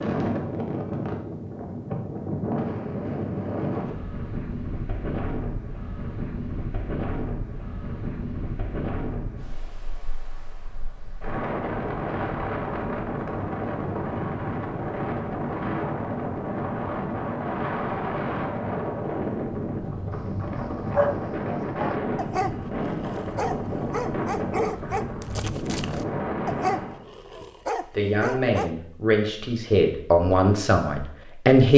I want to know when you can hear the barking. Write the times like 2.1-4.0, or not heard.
20.1-28.8.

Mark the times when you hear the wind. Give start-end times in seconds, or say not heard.
0.0-27.1.